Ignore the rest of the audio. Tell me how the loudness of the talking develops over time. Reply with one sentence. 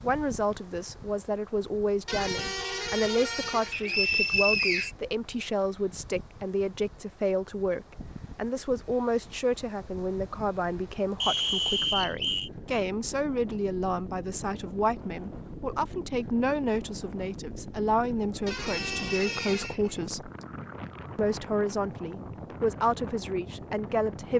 The loudness of the talking stays about the same.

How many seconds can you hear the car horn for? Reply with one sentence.
The car horn can be heard for 3 seconds in total.